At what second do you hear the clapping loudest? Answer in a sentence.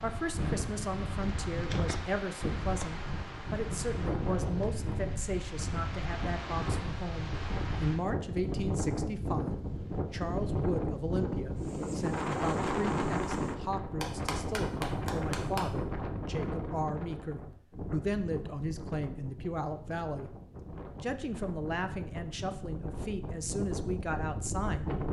The volume of the clapping peaks at 15 seconds.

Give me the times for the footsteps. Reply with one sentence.
The footsteps can't be heard in this clip.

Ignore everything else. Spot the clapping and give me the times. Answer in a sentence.
You can hear the clapping from 14.0 to 15.7 s.